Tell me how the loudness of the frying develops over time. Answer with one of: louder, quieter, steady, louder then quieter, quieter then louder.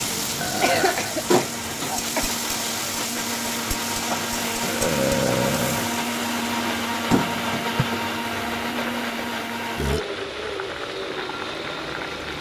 quieter.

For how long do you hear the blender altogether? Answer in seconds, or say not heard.
12 s.